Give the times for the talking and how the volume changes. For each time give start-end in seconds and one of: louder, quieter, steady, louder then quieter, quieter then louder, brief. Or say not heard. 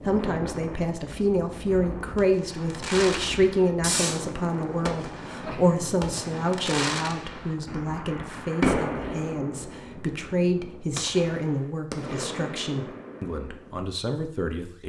0.1-14.8 quieter.